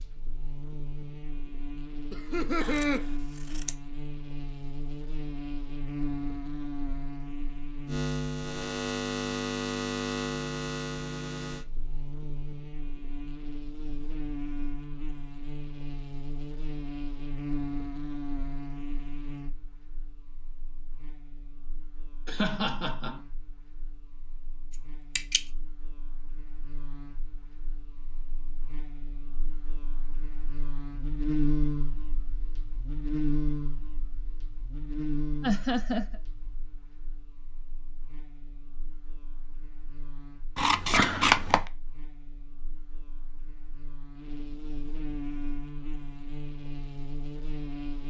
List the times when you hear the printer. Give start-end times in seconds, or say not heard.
not heard.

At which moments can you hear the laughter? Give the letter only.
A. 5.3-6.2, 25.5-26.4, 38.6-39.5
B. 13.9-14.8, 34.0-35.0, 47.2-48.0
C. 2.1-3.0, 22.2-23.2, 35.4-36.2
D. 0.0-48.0
C.